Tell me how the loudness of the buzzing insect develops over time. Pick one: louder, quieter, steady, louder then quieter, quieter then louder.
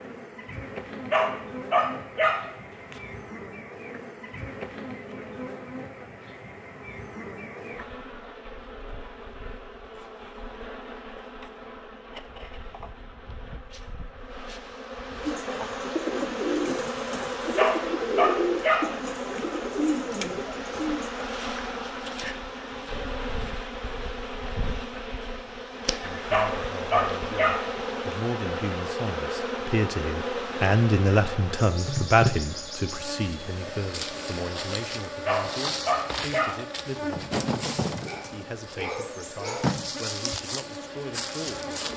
louder.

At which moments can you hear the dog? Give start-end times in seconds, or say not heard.
1.1-3.0, 17.6-19.4, 26.3-28.2, 35.2-36.6.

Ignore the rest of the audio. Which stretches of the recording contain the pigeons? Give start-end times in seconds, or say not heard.
15.2-21.2.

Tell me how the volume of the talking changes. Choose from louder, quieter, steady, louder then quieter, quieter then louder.
louder then quieter.